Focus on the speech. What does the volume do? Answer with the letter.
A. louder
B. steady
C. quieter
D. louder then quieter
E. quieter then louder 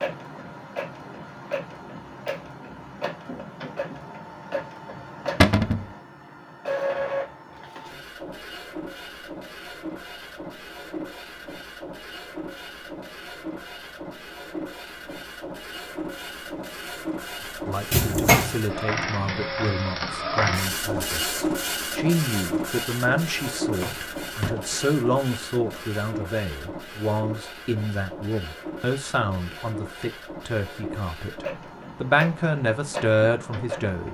A.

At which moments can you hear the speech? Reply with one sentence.
The speech can be heard from 17.6 to 34.0 s.